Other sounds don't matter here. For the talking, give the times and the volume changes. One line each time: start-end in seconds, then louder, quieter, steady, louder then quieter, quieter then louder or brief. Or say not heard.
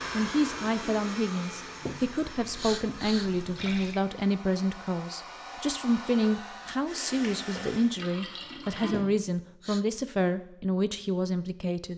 0.1-11.9 steady.